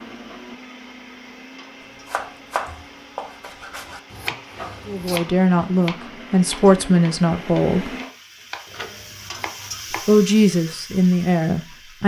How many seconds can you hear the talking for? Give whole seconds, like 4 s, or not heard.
5 s.